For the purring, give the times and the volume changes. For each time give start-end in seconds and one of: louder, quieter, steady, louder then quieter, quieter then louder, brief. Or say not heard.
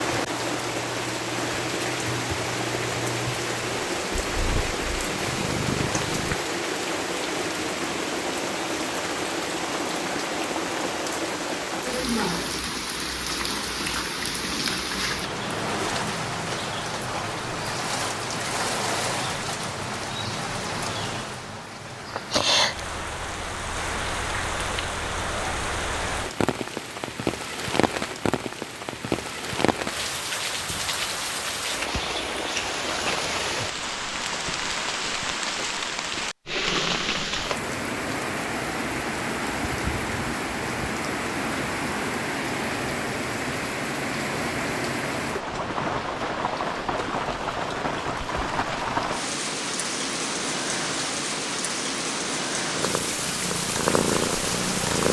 0.0-6.3 louder
52.8-55.0 brief.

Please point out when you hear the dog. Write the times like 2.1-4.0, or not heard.
not heard.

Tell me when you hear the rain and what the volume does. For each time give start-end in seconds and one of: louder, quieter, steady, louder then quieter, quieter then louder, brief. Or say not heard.
0.0-55.0 steady.